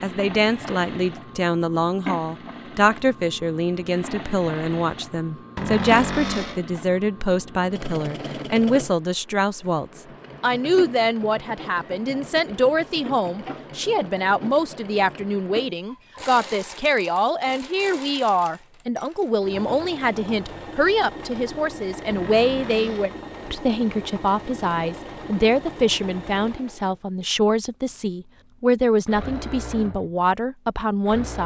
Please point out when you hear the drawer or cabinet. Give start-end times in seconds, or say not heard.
5.5-6.6, 22.1-23.2.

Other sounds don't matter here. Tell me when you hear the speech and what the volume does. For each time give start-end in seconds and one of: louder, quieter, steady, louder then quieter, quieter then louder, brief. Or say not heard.
0.0-31.4 steady.